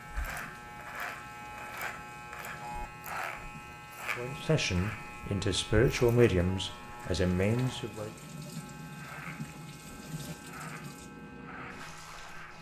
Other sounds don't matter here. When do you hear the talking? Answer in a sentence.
The talking can be heard from 4.2 to 8.1 s.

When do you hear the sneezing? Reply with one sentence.
You can't hear the sneezing here.